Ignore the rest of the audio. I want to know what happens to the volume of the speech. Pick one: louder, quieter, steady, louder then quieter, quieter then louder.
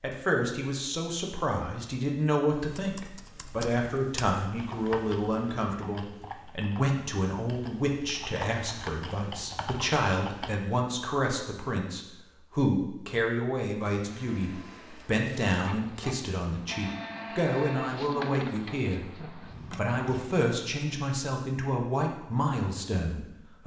steady.